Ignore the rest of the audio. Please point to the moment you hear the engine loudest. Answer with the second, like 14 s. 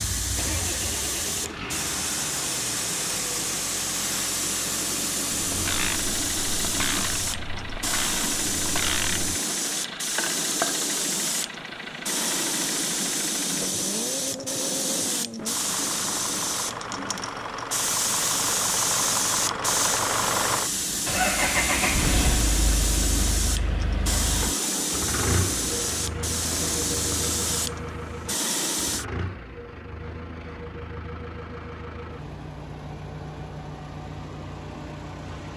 22 s.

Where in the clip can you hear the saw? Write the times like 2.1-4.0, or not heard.
not heard.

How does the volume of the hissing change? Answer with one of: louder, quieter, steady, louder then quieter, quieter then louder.
steady.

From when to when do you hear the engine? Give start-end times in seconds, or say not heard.
0.2-35.5.